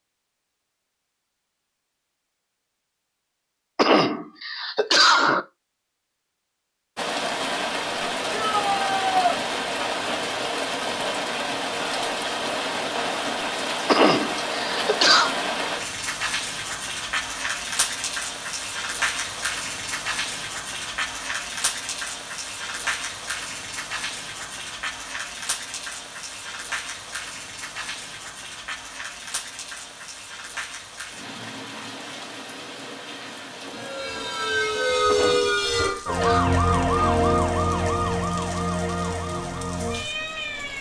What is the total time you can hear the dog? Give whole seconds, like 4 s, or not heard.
not heard.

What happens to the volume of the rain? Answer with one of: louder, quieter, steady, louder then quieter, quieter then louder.
quieter.